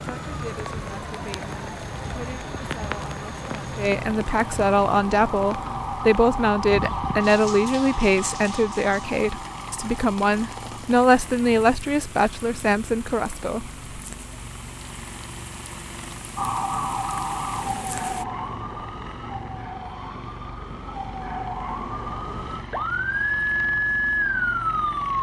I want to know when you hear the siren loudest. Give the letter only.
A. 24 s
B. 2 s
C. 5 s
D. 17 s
A.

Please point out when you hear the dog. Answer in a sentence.
The dog can't be heard in this clip.